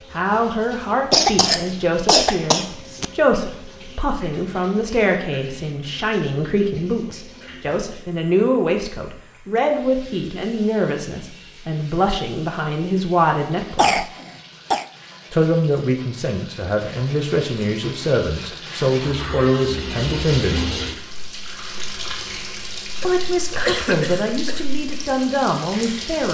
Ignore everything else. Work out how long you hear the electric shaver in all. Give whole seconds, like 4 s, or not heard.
not heard.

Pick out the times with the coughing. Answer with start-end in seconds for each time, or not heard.
1.1-3.0, 13.8-14.8, 23.0-24.6.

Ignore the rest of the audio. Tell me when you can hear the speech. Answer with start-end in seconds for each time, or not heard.
0.1-14.1, 15.3-20.8, 23.0-26.2.